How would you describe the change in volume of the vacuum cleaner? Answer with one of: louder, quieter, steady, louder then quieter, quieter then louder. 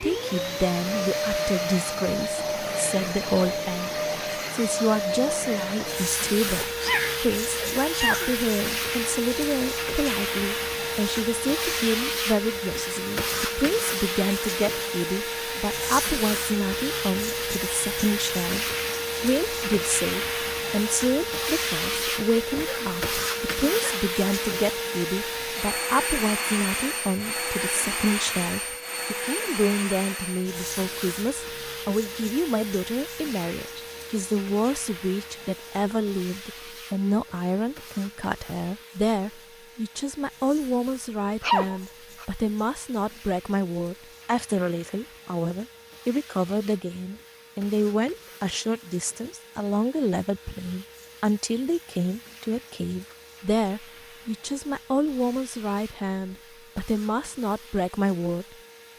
quieter.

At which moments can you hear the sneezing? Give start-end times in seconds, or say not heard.
6.6-8.3, 22.6-23.0, 23.6-24.1, 41.4-42.2.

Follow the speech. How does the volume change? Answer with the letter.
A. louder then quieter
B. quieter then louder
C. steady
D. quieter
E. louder
C.